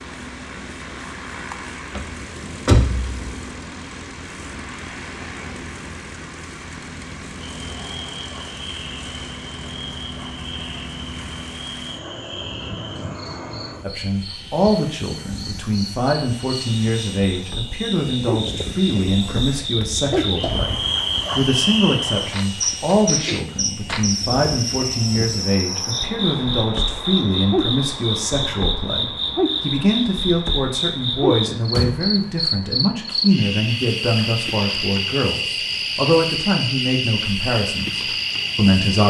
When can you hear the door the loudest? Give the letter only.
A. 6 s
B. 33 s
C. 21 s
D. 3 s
D.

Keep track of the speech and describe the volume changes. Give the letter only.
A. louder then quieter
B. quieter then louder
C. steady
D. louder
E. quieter
C.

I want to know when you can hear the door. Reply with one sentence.
The door can be heard from 1.9 to 3.4 s, from 19.8 to 20.7 s and from 31.7 to 32.2 s.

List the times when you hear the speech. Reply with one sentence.
The speech can be heard from 13.8 to 39.0 s.